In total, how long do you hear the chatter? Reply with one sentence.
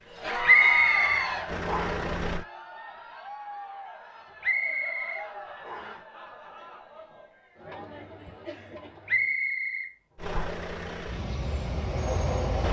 You can hear the chatter for 9 seconds altogether.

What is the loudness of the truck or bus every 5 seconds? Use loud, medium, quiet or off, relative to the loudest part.
loud, off, loud.